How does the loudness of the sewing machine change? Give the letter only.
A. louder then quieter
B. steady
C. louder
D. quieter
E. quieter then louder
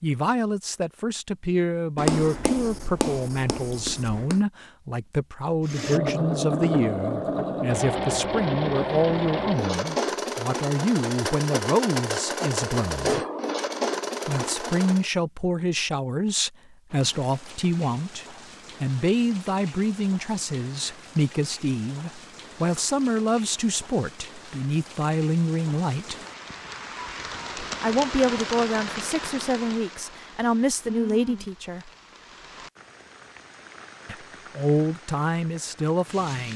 B.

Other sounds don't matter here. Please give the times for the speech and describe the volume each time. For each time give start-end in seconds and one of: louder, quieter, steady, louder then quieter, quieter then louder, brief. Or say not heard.
0.0-13.2 steady
14.2-26.1 steady
27.8-31.9 quieter then louder
34.0-36.5 brief.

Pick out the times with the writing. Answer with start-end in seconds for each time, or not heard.
1.9-4.4.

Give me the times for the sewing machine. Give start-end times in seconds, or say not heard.
5.6-15.1.